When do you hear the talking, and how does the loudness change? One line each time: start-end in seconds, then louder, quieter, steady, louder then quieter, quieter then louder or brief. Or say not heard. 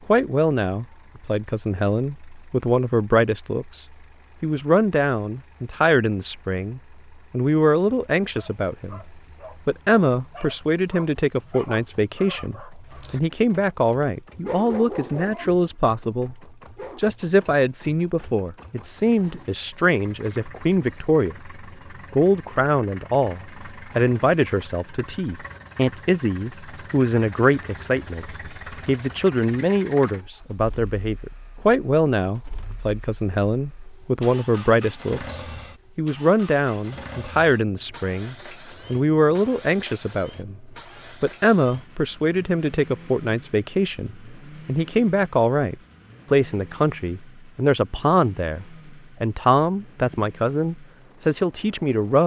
0.1-16.4 steady
16.9-52.2 steady.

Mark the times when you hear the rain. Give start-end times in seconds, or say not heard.
not heard.